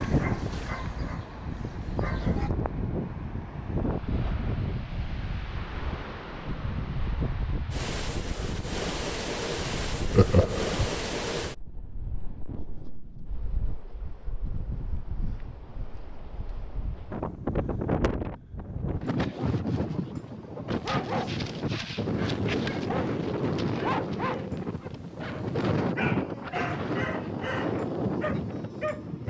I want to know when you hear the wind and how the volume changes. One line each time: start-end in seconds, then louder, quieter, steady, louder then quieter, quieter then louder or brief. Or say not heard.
0.0-29.2 quieter then louder.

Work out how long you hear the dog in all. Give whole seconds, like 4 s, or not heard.
11 s.